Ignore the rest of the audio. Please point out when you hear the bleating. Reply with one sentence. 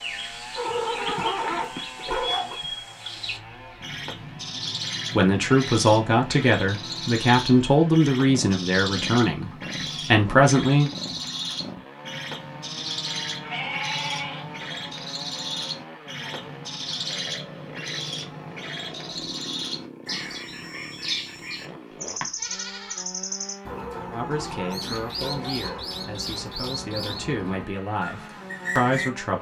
You can hear the bleating from 0.7 to 2.1 s, from 13.3 to 14.4 s and from 22.1 to 23.2 s.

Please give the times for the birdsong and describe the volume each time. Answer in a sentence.
The birdsong can be heard from 0.0 to 29.1 s, at a steady volume.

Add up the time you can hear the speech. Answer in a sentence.
You can hear the speech for 11 seconds altogether.